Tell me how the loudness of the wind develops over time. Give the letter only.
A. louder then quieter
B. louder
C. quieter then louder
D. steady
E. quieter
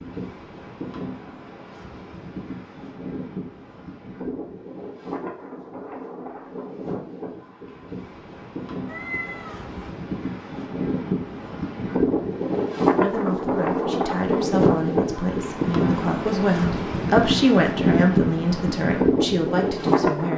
B.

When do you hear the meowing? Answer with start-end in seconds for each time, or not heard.
8.8-9.9.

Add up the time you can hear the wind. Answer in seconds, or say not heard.
20 s.